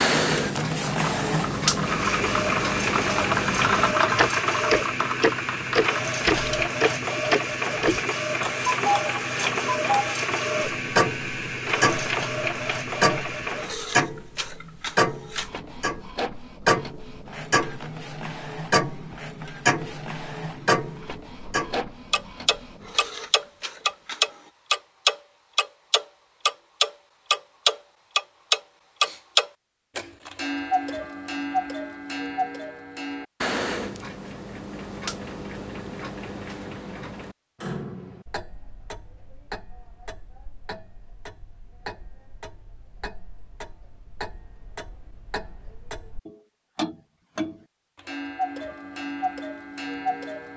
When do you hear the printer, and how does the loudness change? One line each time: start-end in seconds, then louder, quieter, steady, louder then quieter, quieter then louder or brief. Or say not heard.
0.0-24.5 quieter.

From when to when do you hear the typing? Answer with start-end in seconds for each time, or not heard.
0.8-6.7.